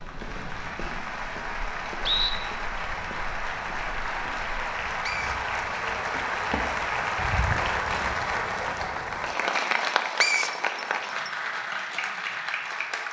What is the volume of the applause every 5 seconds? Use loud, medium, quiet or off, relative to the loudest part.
medium, loud, loud.